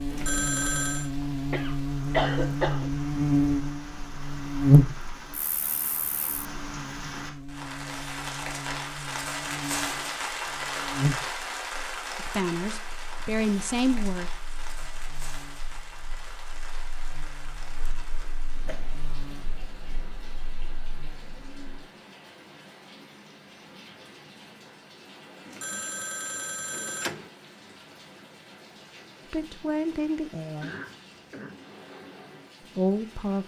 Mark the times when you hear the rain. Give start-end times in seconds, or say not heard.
0.0-33.4.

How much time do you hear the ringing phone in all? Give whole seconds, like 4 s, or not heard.
3 s.